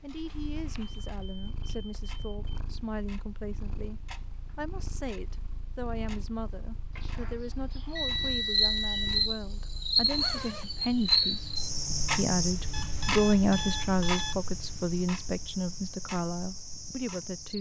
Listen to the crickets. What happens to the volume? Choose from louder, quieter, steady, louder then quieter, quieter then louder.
quieter.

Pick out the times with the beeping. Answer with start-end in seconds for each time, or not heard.
1.0-2.5, 7.0-9.3, 12.7-14.3.